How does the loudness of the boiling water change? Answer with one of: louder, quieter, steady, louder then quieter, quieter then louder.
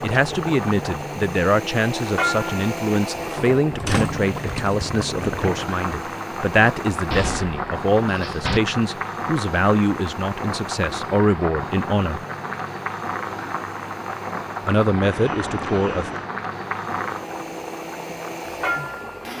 steady.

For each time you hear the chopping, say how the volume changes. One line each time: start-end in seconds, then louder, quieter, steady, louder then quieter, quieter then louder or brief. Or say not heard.
not heard.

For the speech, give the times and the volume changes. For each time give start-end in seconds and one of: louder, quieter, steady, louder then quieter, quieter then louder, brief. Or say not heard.
0.0-12.2 steady
14.7-16.1 brief.